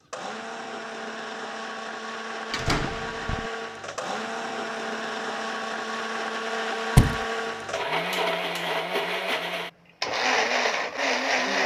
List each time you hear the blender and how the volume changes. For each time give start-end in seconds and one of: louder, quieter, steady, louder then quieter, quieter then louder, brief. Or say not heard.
0.0-11.6 louder.